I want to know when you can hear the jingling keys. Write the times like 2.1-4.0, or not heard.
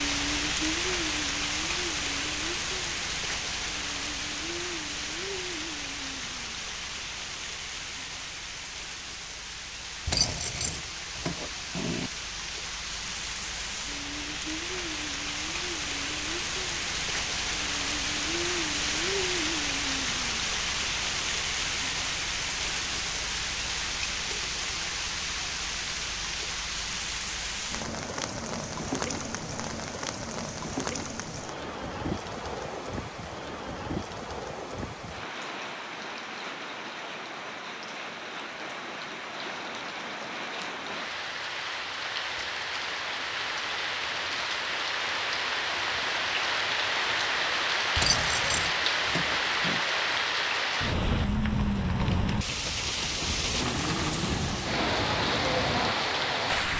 10.1-12.1, 48.0-49.8.